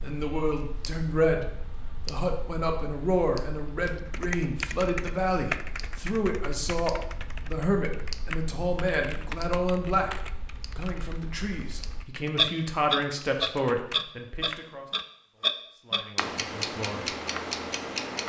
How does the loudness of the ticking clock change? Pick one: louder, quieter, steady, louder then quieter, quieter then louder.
louder.